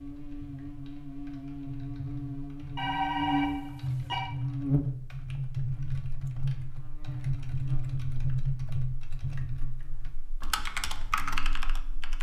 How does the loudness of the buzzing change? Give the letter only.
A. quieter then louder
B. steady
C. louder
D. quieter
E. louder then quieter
E.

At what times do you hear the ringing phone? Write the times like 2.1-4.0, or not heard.
2.8-4.3.